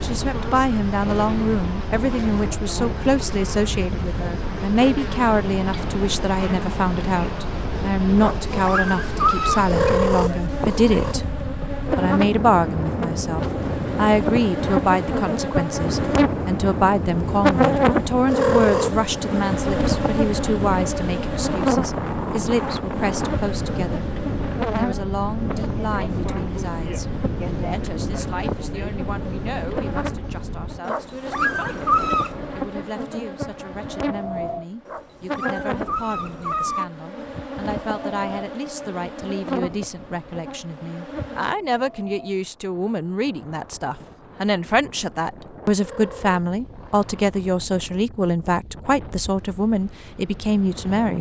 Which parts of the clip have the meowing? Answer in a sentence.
You can hear the meowing from 9.7 to 11.2 s, from 18.2 to 18.9 s and from 45.8 to 47.6 s.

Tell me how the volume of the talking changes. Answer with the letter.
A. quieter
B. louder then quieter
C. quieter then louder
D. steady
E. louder
C.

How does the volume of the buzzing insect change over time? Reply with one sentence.
The volume of the buzzing insect goes up, then down.